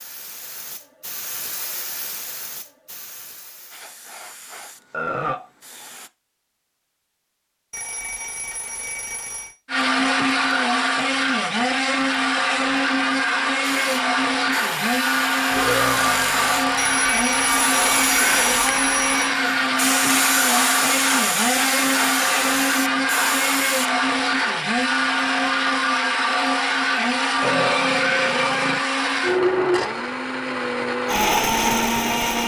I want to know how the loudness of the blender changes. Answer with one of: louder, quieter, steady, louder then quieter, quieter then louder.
steady.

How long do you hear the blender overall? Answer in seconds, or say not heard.
23 s.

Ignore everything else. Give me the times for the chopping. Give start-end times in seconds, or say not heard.
not heard.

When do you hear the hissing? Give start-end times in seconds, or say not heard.
0.0-6.1, 13.6-23.9.